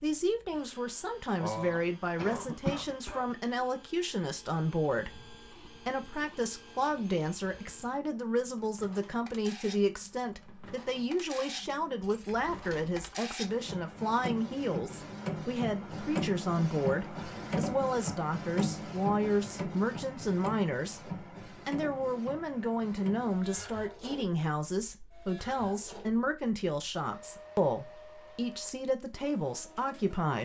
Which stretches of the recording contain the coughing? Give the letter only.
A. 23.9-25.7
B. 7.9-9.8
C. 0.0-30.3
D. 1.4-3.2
D.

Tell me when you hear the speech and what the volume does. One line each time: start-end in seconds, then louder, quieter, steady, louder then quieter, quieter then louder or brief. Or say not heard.
0.0-30.3 steady.